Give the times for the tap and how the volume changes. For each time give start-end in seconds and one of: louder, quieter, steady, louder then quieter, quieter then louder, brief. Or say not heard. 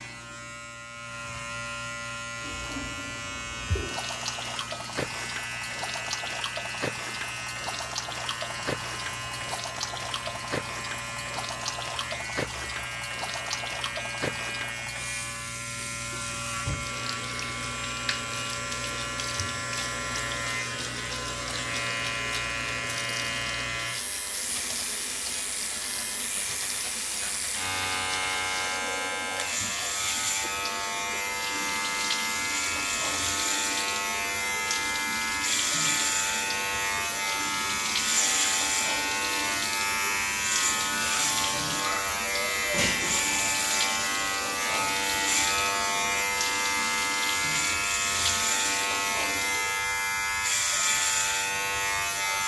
2.4-49.7 steady.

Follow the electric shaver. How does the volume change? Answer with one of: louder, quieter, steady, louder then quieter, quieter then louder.
louder.